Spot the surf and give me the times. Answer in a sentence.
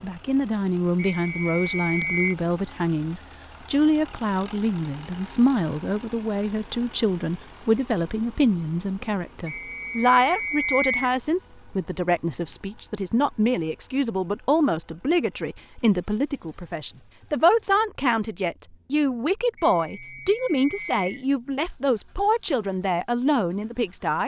You can't hear the surf here.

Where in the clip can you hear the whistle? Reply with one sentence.
The whistle can be heard from 0.9 to 2.4 s, from 9.4 to 11.2 s and from 19.6 to 21.1 s.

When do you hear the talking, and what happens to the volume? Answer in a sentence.
You can hear the talking from 0.0 to 24.2 s, at a steady volume.